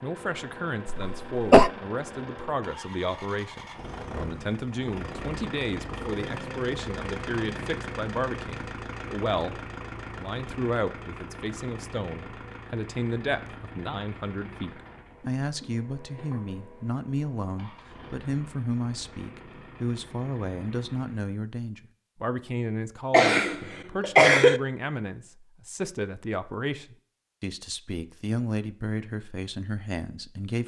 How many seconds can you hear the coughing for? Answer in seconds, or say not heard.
2 s.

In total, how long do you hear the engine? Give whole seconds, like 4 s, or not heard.
21 s.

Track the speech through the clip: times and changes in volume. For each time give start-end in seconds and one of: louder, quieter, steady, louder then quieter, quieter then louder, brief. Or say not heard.
0.0-30.6 steady.